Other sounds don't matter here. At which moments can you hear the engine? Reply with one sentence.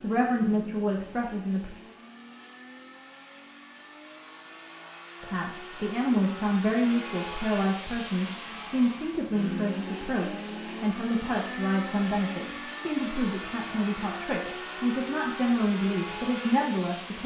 You can hear the engine from 0.0 to 17.2 s.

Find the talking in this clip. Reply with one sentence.
The talking can be heard from 0.0 to 1.7 s and from 5.2 to 17.2 s.